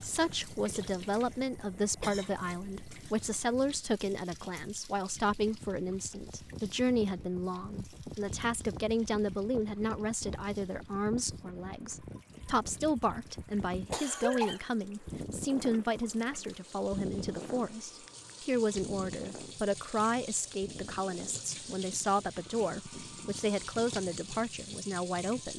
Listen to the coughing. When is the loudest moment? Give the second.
14 s.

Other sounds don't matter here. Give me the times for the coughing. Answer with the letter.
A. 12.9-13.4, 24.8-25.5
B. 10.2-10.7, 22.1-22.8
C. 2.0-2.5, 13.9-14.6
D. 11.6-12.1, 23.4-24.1
C.